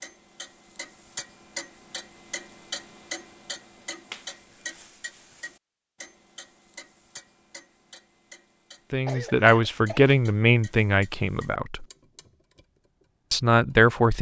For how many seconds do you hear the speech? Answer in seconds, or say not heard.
4 s.